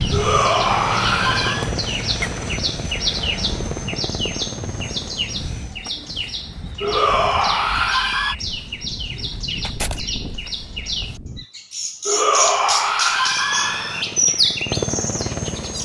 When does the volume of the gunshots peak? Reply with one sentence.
The volume of the gunshots peaks at 10 seconds.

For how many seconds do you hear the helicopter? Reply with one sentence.
You can hear the helicopter for 8 seconds altogether.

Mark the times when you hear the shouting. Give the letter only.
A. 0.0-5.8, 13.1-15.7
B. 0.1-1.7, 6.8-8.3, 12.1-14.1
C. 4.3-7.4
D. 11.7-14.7
B.